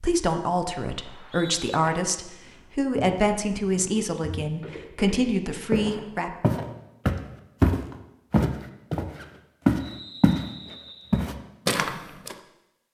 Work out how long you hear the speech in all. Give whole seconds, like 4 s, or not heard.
6 s.